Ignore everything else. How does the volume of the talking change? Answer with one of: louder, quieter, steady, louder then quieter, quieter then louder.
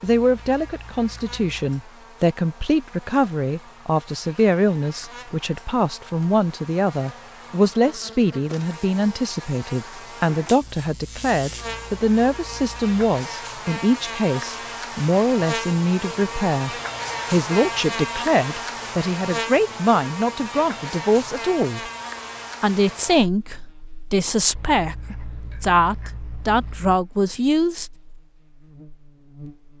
steady.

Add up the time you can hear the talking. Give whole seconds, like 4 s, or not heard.
27 s.